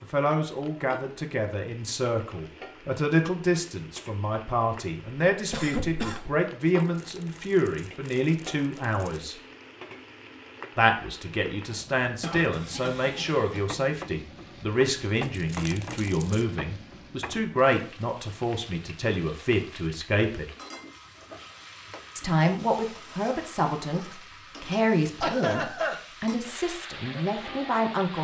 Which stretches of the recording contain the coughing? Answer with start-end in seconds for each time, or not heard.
5.5-6.3, 12.2-13.7, 25.2-26.0.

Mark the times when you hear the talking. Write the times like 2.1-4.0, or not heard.
0.0-9.3, 10.8-20.5, 22.1-28.1.